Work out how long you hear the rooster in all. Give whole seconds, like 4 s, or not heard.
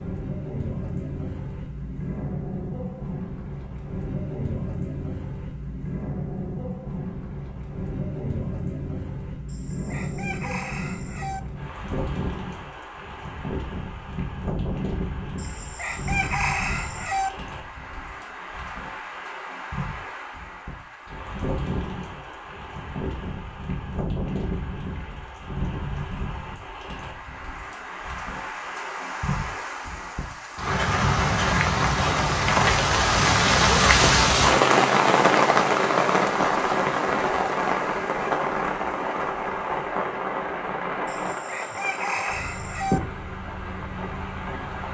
6 s.